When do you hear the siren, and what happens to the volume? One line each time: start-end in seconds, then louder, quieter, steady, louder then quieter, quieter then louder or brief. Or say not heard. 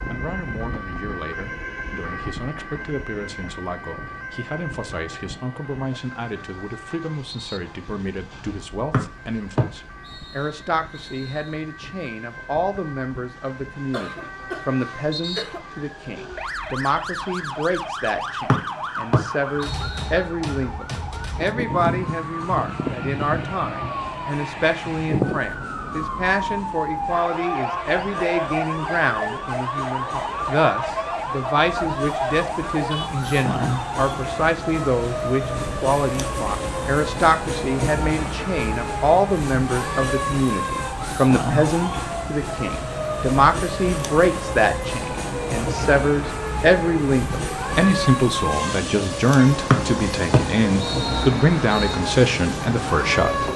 0.0-53.5 louder.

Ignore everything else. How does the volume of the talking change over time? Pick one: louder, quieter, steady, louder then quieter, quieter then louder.
louder.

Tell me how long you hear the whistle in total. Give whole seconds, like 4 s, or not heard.
7 s.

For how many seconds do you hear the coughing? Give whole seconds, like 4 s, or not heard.
2 s.